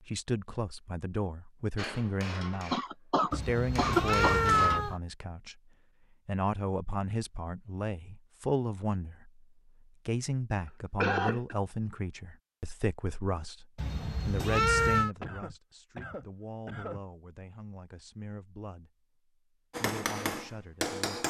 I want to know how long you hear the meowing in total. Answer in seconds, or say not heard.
3 s.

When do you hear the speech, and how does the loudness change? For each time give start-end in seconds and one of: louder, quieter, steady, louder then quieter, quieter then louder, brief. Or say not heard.
0.0-18.9 quieter
19.8-21.2 brief.